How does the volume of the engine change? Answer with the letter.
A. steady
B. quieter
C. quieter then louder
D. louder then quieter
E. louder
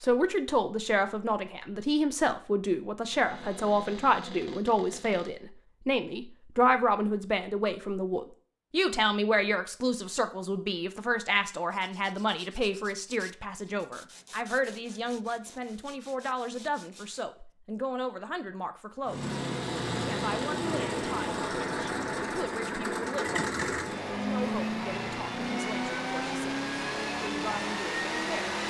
A.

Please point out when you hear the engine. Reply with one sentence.
You can hear the engine from 19.1 to 28.6 s.